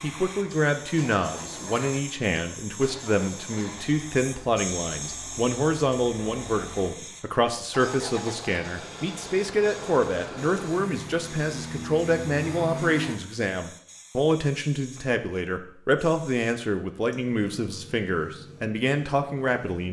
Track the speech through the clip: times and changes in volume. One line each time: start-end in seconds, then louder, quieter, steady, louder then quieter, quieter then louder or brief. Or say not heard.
0.0-19.8 steady.